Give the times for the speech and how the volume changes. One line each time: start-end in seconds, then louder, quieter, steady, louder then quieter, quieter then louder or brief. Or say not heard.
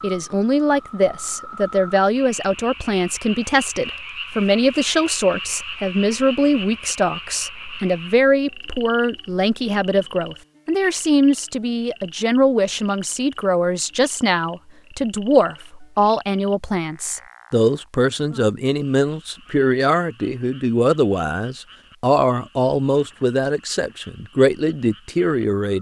0.0-25.7 steady.